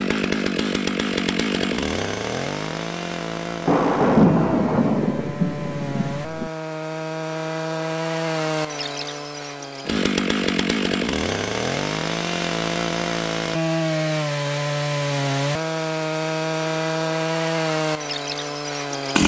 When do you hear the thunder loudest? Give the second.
4 s.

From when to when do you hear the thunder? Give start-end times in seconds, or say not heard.
3.6-6.5.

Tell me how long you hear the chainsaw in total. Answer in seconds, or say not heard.
19 s.